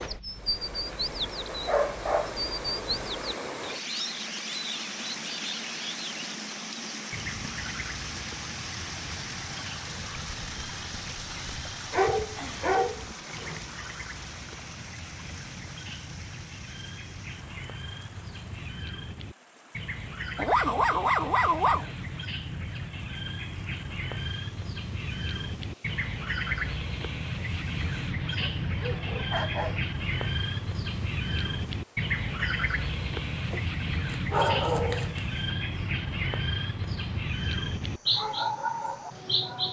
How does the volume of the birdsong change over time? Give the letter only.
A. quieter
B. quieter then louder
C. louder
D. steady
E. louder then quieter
B.